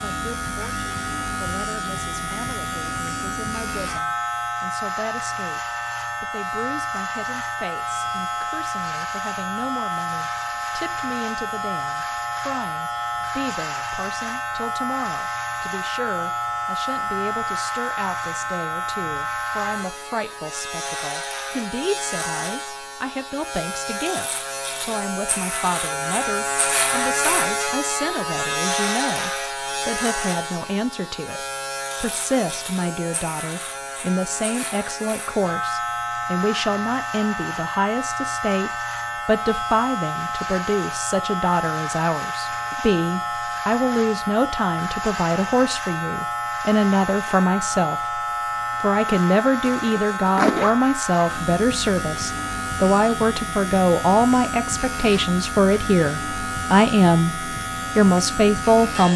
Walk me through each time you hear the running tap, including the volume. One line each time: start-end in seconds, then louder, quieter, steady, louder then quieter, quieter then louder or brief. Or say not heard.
not heard.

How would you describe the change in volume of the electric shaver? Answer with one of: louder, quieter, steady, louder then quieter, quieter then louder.
steady.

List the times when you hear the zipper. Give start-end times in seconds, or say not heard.
49.6-50.8.